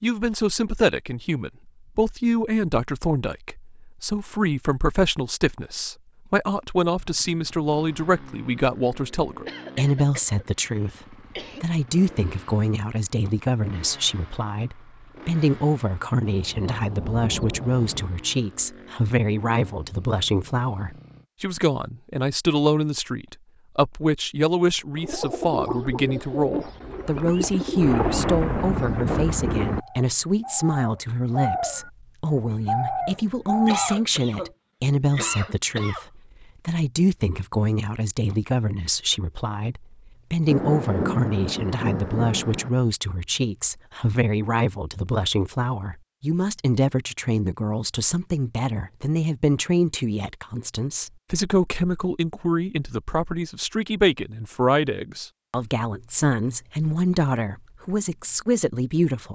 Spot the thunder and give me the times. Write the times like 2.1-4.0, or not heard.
16.2-18.1, 27.8-29.8, 40.5-42.7.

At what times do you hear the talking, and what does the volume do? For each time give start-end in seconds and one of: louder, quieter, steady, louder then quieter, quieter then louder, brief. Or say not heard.
0.0-59.3 steady.